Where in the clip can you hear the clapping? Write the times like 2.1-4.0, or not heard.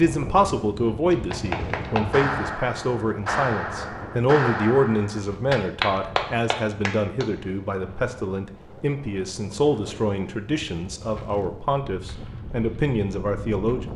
1.1-7.2.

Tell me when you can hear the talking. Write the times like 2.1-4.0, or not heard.
0.0-13.9.